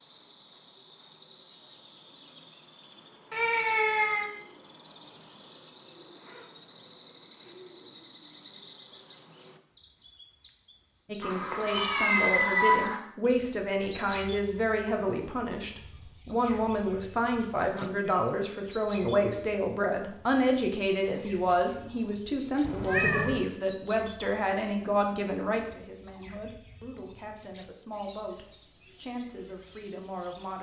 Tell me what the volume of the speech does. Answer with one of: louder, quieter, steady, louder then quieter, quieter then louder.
quieter.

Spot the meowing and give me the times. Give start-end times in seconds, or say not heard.
3.3-4.3, 11.2-13.0, 22.6-23.4.